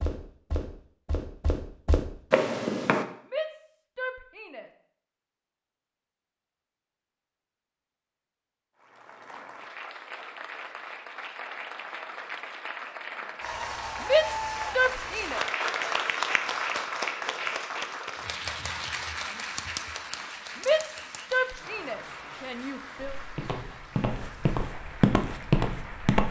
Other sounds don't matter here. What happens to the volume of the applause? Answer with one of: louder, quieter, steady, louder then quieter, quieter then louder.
louder then quieter.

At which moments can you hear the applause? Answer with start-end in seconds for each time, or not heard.
8.8-26.2.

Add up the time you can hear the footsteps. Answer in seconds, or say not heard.
6 s.